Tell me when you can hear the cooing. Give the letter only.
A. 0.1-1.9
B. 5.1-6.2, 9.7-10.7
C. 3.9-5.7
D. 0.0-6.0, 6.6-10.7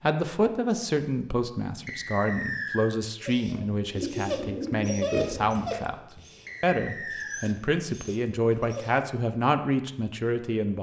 C.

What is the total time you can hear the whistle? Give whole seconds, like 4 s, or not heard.
2 s.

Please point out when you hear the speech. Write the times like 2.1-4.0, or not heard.
0.0-6.0, 6.6-10.7.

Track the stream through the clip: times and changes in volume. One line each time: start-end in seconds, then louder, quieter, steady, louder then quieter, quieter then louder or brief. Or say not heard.
not heard.